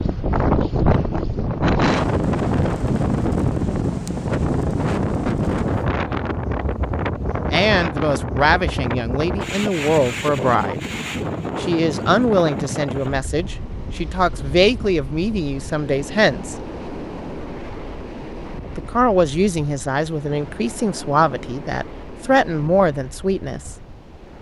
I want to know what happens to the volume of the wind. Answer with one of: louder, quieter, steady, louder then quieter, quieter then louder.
quieter.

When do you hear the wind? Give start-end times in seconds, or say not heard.
0.0-24.3.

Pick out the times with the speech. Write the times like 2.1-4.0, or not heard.
7.5-10.8, 11.6-16.6, 18.8-23.8.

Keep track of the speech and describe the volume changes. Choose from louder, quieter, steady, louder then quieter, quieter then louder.
steady.